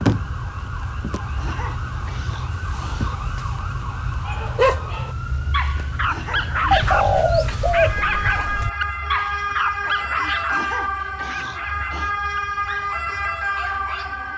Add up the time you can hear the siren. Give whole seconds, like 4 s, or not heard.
14 s.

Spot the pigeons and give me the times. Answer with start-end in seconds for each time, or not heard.
6.7-8.7.